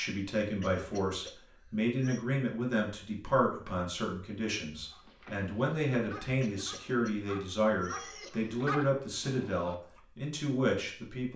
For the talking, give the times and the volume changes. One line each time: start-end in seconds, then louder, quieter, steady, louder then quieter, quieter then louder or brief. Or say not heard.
0.0-11.3 steady.